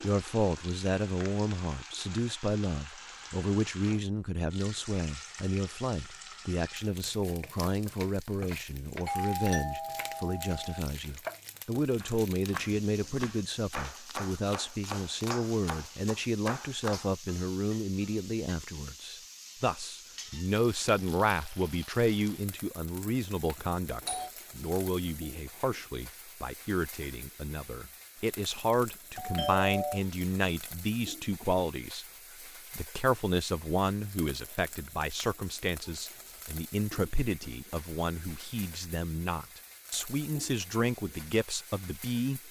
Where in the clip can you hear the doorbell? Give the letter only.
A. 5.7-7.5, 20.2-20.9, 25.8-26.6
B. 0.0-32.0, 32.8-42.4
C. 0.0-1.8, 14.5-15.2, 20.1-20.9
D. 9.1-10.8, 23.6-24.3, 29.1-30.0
D.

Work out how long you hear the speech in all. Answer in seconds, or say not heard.
42 s.